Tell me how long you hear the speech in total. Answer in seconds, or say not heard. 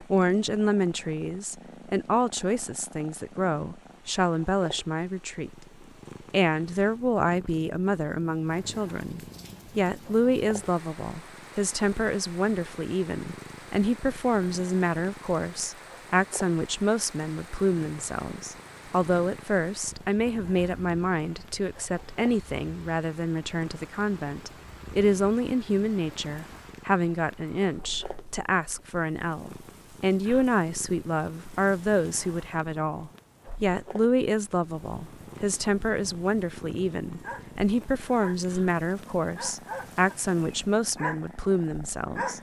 42 s.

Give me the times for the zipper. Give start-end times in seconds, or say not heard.
not heard.